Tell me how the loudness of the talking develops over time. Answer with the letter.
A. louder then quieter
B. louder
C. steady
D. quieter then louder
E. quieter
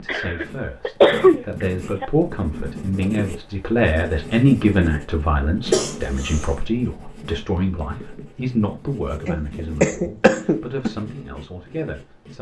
A.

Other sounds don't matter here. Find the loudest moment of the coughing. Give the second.
1 s.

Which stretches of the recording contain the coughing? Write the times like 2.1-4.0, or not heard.
0.1-2.0, 5.7-6.5, 9.2-10.9.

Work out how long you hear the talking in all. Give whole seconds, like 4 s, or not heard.
12 s.